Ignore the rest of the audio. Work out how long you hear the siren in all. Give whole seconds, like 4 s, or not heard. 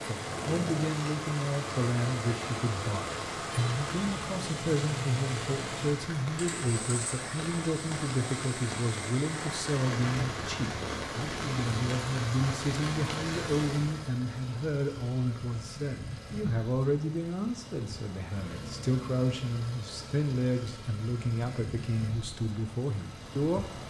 not heard.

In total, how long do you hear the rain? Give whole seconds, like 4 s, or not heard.
14 s.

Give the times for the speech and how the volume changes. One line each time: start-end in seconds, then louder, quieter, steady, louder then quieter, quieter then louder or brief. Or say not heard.
0.0-23.7 steady.